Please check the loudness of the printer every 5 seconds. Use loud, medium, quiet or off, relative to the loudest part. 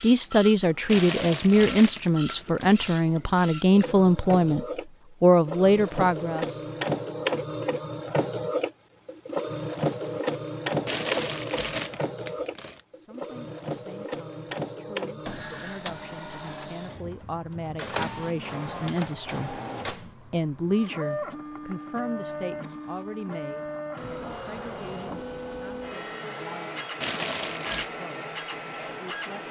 medium, loud, loud, medium, medium, medium.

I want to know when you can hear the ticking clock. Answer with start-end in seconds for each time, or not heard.
not heard.